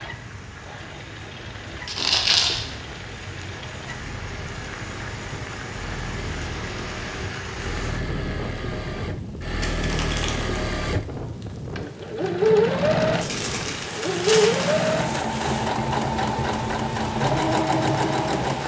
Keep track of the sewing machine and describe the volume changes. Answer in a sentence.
The loudness of the sewing machine goes up.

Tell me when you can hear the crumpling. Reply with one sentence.
The crumpling can be heard from 1.9 to 2.6 s, from 9.6 to 10.6 s and from 13.1 to 14.8 s.